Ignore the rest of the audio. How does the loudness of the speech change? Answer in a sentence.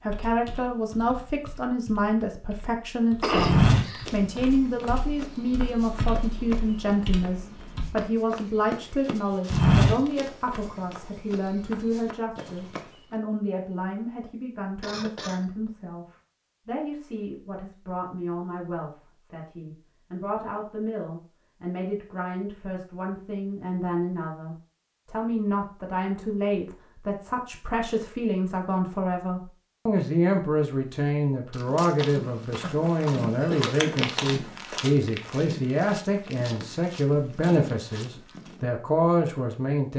The volume of the speech goes down, then up.